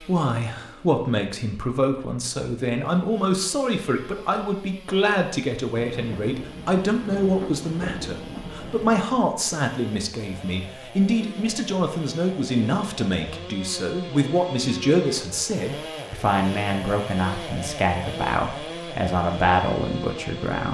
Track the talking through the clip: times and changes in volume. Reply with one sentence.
The talking can be heard from 0.0 to 20.6 s, at a steady volume.